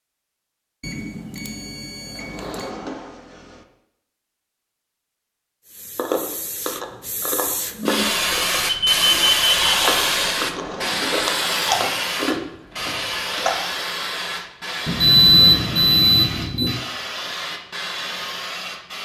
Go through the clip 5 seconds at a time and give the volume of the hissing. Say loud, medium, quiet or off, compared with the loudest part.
off, loud, loud, medium.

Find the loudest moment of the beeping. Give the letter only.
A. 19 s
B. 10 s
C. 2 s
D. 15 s
D.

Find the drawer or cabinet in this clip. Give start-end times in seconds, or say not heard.
2.1-3.6, 10.3-11.3.